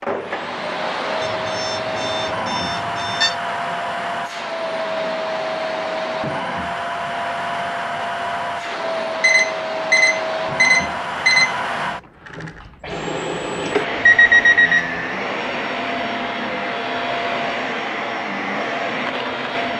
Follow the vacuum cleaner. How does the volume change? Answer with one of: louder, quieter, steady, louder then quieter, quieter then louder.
steady.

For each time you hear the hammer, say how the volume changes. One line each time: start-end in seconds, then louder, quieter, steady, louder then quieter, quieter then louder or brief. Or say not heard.
not heard.